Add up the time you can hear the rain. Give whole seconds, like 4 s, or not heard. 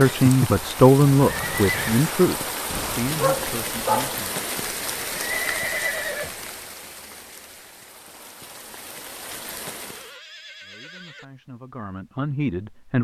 10 s.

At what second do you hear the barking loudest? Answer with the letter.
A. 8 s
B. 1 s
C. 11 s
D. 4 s
D.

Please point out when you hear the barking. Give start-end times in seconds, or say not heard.
2.7-4.2.